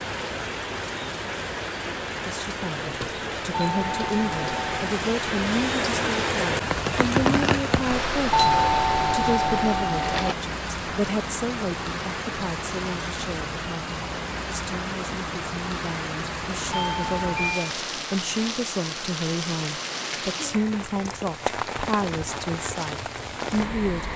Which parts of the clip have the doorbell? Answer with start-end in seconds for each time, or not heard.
3.5-5.0, 8.3-10.3, 16.7-17.8.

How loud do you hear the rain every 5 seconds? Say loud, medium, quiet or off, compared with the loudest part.
medium, loud, medium, medium, medium.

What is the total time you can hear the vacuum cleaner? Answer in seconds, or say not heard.
not heard.